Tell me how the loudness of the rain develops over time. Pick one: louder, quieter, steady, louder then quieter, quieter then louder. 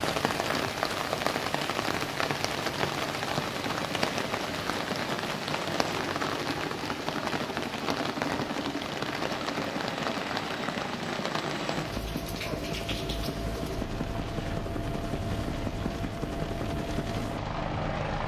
quieter.